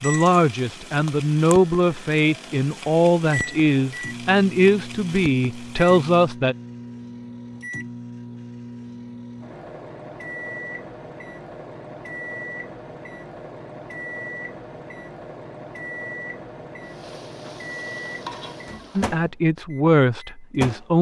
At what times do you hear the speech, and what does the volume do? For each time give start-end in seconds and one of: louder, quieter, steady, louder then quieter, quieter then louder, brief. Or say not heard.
0.0-6.5 steady
18.9-20.9 brief.